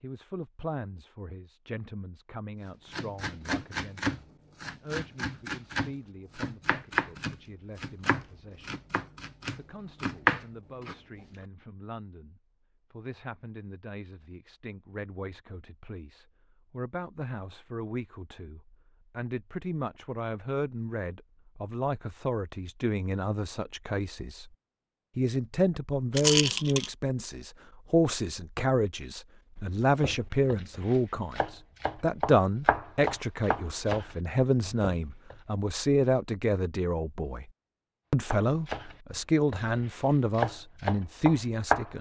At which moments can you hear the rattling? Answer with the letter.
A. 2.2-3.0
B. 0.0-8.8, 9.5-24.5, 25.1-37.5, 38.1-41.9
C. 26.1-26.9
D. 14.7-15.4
C.